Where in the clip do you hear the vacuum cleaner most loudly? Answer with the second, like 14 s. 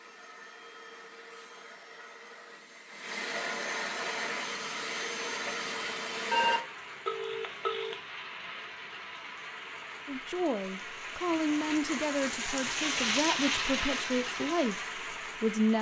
4 s.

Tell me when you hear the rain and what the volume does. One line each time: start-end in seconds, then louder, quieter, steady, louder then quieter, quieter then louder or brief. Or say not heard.
4.0-15.7 louder.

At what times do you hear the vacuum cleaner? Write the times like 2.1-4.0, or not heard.
0.0-6.7.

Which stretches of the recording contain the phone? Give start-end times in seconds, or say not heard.
6.3-8.0.